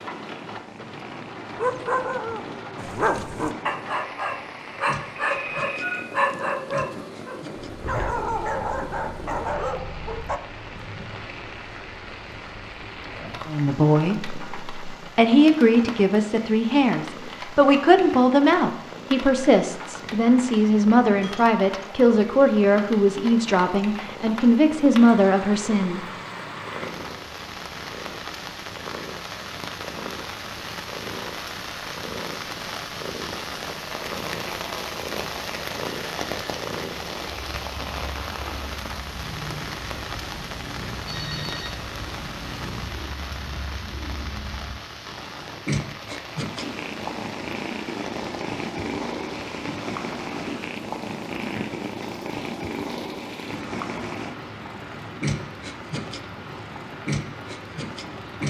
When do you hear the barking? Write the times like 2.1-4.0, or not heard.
1.6-10.4.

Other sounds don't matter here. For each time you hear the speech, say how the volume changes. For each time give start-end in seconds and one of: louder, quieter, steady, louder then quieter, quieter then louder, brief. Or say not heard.
13.4-26.0 steady.